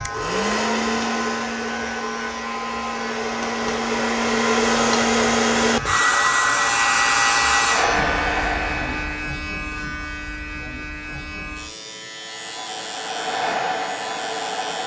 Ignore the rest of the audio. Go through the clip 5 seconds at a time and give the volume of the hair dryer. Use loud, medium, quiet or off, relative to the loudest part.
loud, loud, medium.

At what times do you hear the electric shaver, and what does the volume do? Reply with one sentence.
You can hear the electric shaver from 0.0 to 14.8 s, getting louder then quieter.